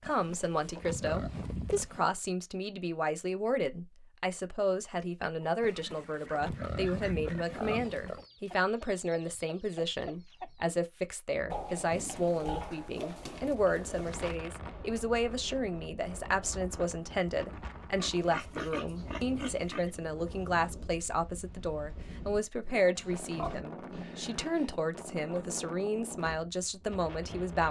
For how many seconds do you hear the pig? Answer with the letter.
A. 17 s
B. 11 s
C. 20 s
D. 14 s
B.